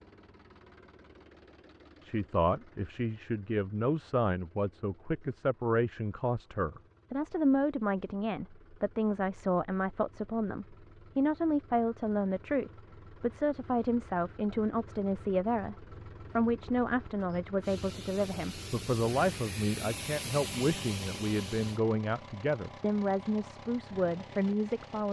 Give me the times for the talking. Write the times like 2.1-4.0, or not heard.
2.0-25.0.